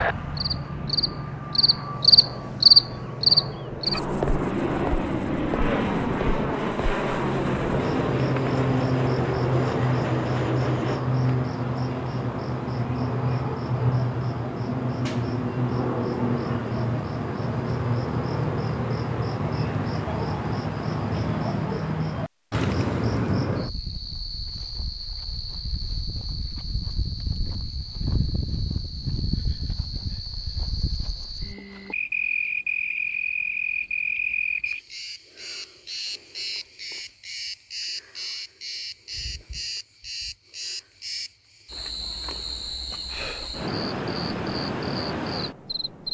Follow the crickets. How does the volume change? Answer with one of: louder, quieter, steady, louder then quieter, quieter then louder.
quieter.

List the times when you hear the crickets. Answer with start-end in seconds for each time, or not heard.
0.2-46.1.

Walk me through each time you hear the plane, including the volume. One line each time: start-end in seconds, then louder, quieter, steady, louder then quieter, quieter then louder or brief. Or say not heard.
0.0-11.1 louder.